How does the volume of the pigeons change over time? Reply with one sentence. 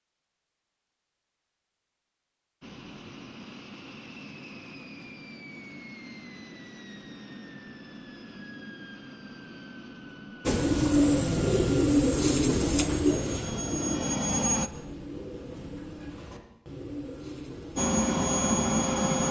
The loudness of the pigeons goes down.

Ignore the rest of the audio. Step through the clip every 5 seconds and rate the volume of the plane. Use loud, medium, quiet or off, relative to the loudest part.
quiet, quiet, medium, loud.